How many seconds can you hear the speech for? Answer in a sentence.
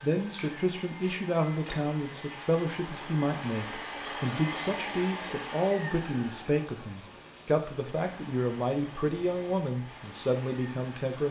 You can hear the speech for 11 seconds altogether.